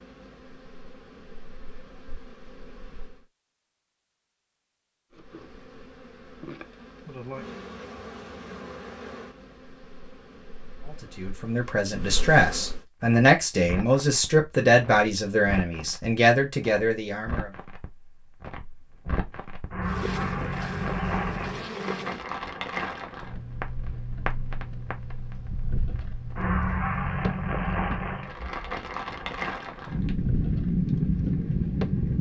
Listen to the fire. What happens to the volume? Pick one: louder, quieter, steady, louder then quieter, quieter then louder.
louder.